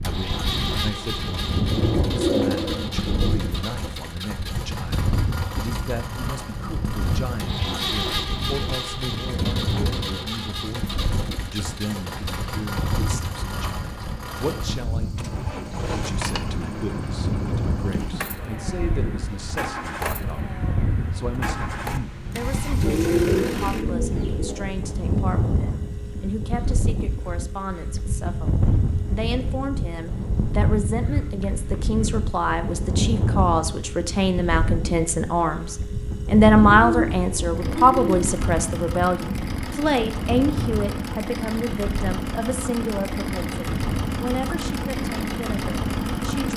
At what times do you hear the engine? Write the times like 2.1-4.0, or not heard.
0.0-46.5.